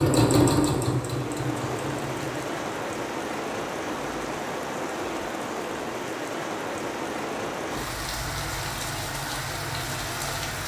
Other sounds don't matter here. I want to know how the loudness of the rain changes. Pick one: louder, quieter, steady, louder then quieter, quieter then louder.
steady.